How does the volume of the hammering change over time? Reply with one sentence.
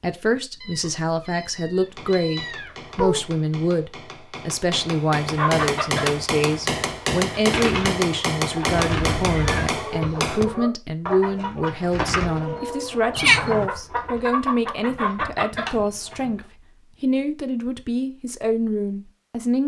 The loudness of the hammering goes up.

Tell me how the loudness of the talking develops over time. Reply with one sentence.
The loudness of the talking stays about the same.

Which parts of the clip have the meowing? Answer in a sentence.
You can hear the meowing from 0.6 to 3.2 s, from 9.1 to 9.7 s and from 13.2 to 13.7 s.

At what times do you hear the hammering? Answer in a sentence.
The hammering can be heard from 1.9 to 10.4 s.